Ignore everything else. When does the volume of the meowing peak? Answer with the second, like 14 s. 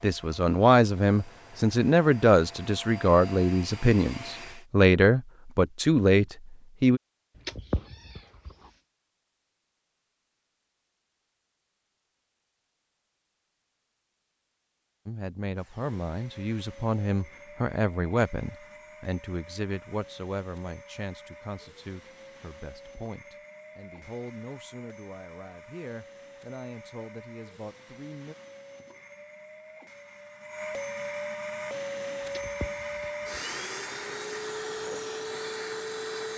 8 s.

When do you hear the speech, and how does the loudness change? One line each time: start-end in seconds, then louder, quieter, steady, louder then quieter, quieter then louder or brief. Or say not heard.
0.0-7.0 steady
15.1-28.4 quieter.